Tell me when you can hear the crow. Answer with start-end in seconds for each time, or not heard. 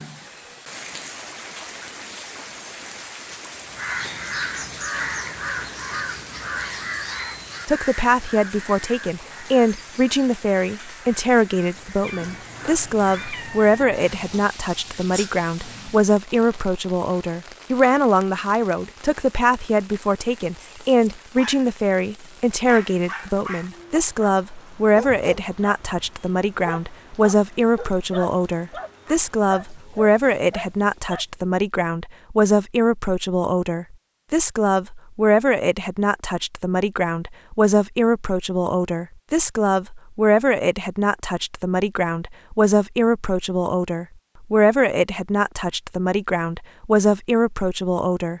3.6-13.4.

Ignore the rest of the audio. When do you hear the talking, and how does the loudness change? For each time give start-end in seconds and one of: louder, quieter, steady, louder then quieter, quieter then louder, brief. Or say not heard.
7.7-48.3 steady.